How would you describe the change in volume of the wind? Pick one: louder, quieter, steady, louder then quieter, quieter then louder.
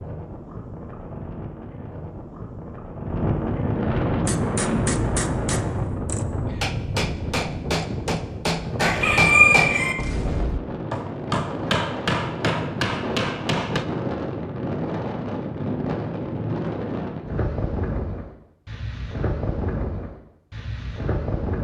steady.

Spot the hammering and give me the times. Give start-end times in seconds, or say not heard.
4.2-13.8.